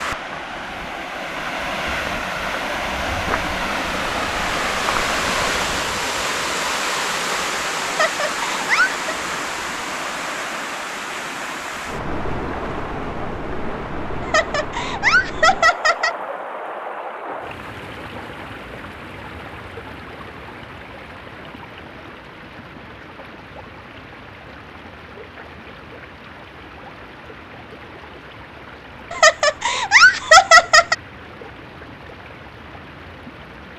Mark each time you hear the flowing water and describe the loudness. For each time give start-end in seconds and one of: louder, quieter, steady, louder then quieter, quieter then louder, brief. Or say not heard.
0.0-33.7 quieter.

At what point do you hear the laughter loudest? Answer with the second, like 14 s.
30 s.